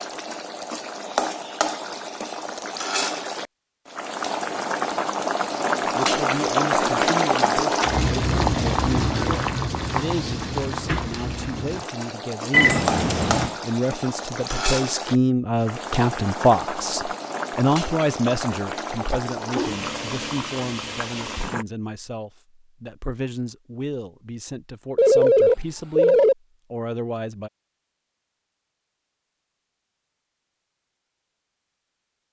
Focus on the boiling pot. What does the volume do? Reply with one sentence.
The volume of the boiling pot goes up, then down.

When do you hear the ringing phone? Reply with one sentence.
The ringing phone can be heard from 12.5 to 13.5 s and from 24.9 to 26.4 s.